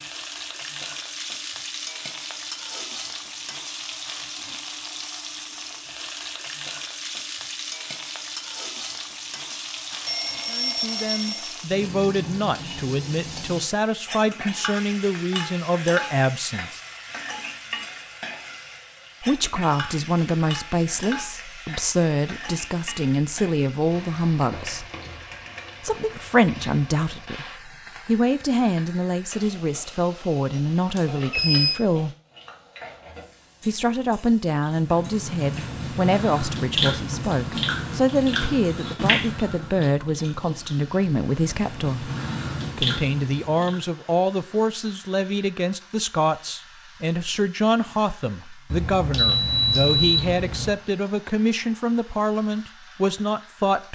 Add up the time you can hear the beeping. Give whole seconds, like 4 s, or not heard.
5 s.